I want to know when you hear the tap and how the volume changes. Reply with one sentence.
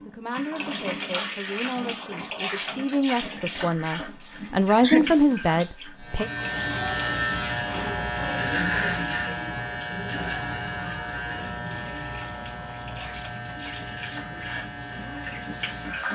The tap can be heard from 0.0 to 16.0 s, getting quieter then louder.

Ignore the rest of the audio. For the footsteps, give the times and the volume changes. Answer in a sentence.
You can't hear the footsteps here.